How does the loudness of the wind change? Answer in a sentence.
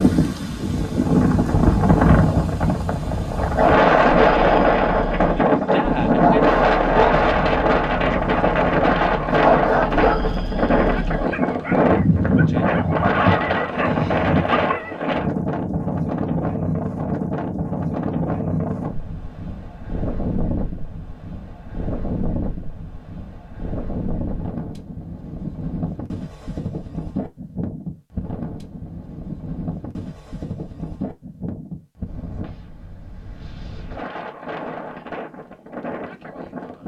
The loudness of the wind goes down.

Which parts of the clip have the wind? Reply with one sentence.
You can hear the wind from 0.0 to 36.8 s.